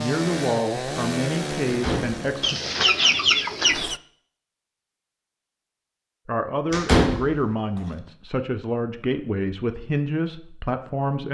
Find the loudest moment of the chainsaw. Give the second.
1 s.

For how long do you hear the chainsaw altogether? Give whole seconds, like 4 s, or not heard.
4 s.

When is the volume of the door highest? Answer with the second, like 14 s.
7 s.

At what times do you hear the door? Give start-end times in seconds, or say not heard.
1.6-2.2, 6.7-7.3.